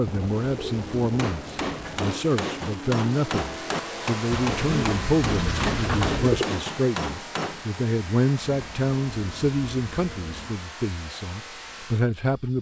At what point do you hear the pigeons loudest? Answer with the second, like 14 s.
6 s.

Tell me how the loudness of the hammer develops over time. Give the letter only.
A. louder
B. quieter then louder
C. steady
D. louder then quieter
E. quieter
C.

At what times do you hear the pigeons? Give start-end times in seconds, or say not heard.
0.1-2.1, 4.3-6.5, 8.4-10.6.